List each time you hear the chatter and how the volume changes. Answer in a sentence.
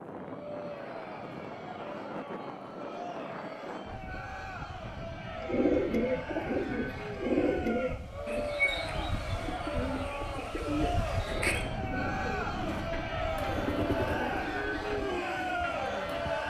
The chatter can be heard from 0.1 to 16.4 s, getting louder.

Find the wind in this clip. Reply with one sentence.
The wind can be heard from 0.0 to 16.4 s.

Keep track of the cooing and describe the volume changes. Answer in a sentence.
The volume of the cooing goes down.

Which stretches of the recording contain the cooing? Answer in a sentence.
You can hear the cooing from 5.3 to 16.2 s.